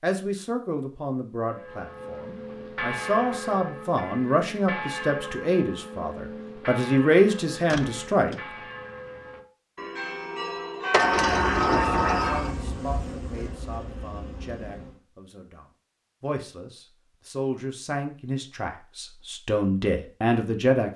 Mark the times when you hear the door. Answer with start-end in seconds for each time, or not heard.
7.7-8.4, 10.9-12.6.